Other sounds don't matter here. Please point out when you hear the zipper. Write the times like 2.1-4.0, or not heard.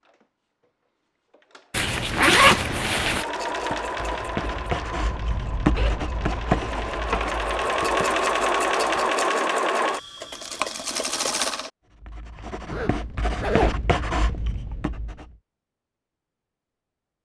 1.7-3.2, 5.8-7.3, 12.7-13.8.